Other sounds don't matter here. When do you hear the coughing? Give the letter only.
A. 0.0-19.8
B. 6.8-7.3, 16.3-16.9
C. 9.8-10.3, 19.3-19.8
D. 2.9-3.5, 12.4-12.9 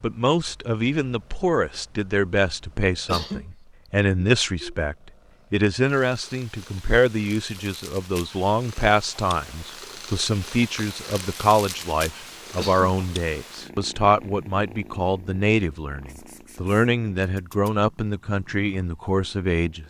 D.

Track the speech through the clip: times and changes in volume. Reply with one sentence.
The speech can be heard from 0.0 to 19.8 s, at a steady volume.